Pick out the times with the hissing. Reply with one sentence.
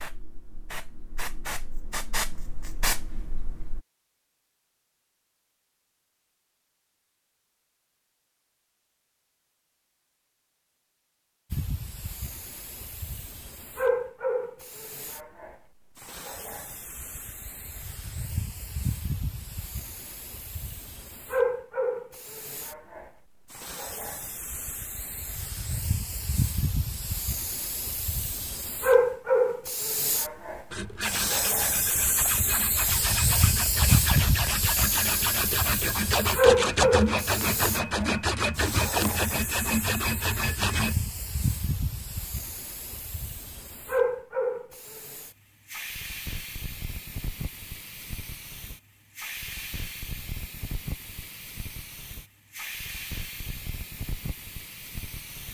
The hissing can be heard from 0.0 to 3.8 s and from 11.5 to 55.5 s.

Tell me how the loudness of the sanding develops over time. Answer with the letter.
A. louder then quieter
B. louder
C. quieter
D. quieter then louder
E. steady
B.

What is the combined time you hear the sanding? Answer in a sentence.
The sanding can be heard for 10 seconds in total.